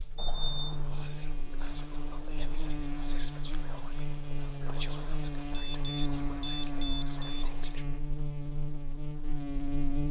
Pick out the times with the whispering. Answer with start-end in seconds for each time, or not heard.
0.8-7.8.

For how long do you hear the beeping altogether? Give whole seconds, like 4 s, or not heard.
3 s.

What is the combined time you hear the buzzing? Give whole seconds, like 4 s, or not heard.
10 s.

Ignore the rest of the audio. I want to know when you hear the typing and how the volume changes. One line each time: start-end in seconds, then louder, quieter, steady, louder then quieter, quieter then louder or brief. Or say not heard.
not heard.